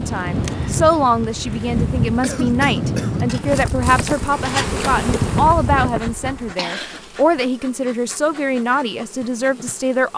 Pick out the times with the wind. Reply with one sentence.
You can hear the wind from 0.0 to 6.5 s.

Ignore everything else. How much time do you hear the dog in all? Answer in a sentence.
The dog can't be heard in this clip.